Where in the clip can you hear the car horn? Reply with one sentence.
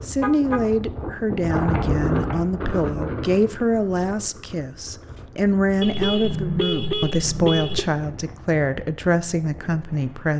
The car horn can be heard from 0.2 to 0.7 s and from 5.8 to 7.8 s.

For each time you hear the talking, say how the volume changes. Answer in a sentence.
You can hear the talking from 0.1 to 10.3 s, at a steady volume.